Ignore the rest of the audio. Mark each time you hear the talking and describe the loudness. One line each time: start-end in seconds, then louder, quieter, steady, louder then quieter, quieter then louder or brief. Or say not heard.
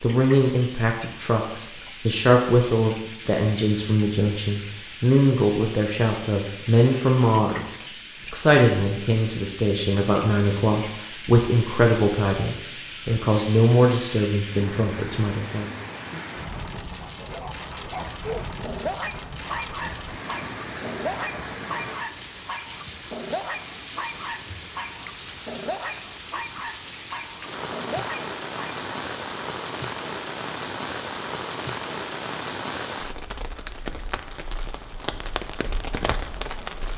0.0-15.7 steady.